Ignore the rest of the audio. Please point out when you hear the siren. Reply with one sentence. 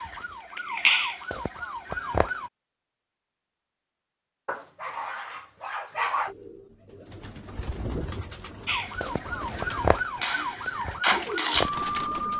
The siren can be heard from 0.0 to 2.5 s and from 8.7 to 12.3 s.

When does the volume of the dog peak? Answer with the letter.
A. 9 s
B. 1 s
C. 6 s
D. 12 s
C.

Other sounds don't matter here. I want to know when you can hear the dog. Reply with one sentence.
The dog can be heard from 4.5 to 6.3 s.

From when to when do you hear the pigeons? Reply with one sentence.
The pigeons can be heard from 5.8 to 12.3 s.